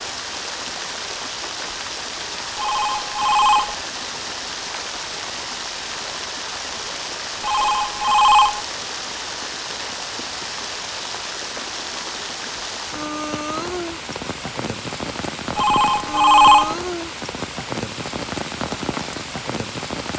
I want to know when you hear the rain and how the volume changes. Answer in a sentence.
The rain can be heard from 0.0 to 20.1 s, at a steady volume.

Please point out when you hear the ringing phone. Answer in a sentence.
You can hear the ringing phone from 2.5 to 3.8 s, from 7.4 to 8.6 s and from 15.6 to 16.8 s.